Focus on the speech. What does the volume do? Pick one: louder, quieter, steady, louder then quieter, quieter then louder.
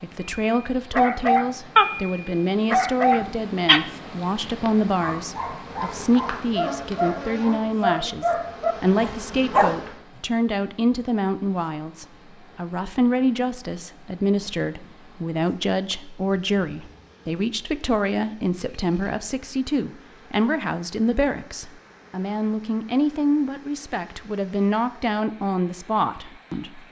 steady.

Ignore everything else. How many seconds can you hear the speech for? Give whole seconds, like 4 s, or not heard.
27 s.